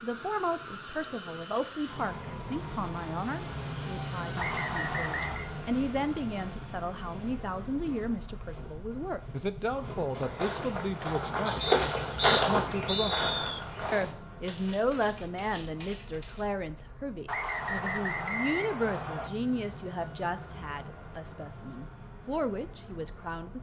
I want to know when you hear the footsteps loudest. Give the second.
12 s.